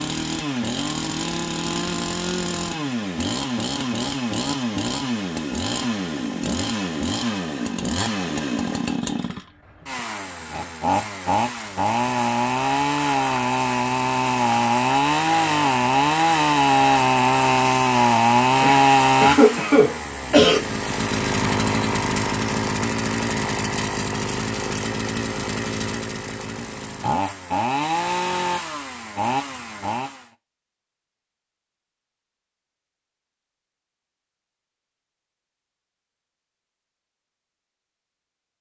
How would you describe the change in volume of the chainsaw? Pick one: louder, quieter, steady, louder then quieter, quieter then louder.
louder then quieter.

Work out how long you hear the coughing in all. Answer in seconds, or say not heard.
2 s.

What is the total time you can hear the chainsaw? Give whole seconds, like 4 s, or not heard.
30 s.